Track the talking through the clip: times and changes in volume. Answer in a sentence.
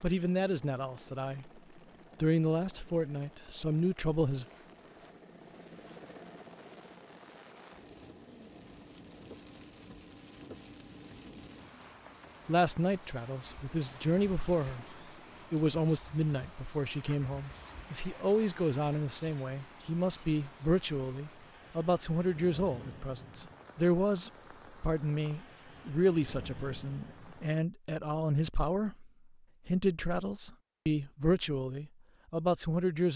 You can hear the talking briefly from 0.0 to 1.5 s; briefly from 2.2 to 4.5 s; briefly from 12.4 to 14.8 s; and from 15.5 to 33.1 s, at a steady volume.